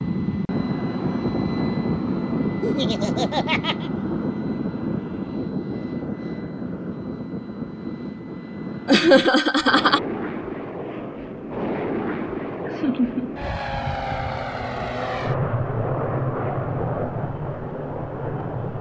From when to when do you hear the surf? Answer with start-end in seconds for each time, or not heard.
not heard.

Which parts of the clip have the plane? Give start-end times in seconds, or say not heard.
0.0-18.7.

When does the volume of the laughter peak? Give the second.
9 s.